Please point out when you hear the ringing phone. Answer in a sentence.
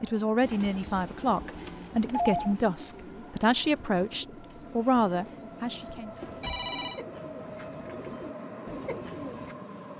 You can hear the ringing phone from 1.6 to 2.5 s and from 6.0 to 7.0 s.